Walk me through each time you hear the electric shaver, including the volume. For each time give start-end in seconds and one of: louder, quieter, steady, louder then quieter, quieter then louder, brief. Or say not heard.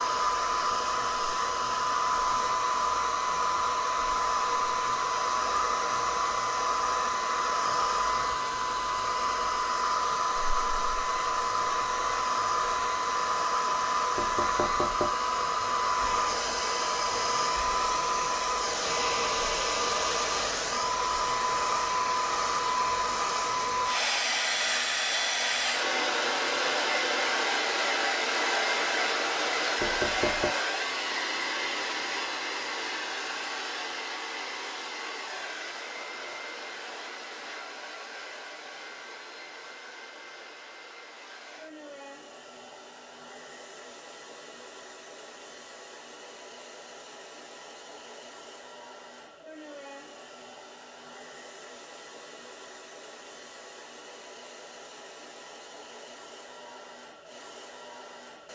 not heard.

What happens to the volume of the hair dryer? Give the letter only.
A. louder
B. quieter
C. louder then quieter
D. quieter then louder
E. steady
B.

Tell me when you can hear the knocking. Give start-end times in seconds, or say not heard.
14.2-15.2, 29.8-30.5.